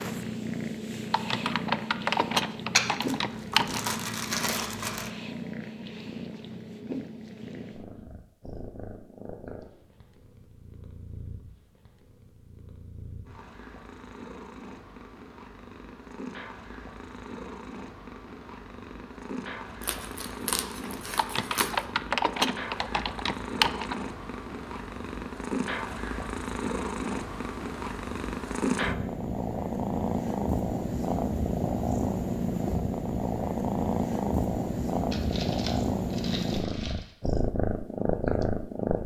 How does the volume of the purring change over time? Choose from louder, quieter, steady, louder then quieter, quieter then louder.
quieter then louder.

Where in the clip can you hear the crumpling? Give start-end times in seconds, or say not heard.
2.8-5.1, 19.8-21.9, 35.1-37.1.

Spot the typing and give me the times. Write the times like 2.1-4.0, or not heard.
1.1-3.9, 21.1-23.9.